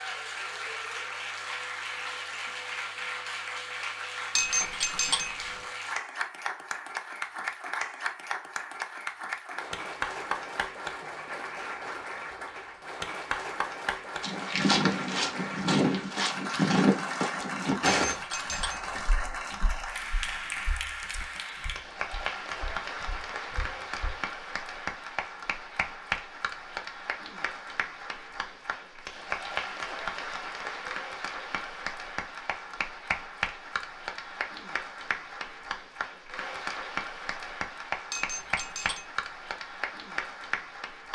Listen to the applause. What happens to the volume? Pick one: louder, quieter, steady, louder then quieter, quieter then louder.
steady.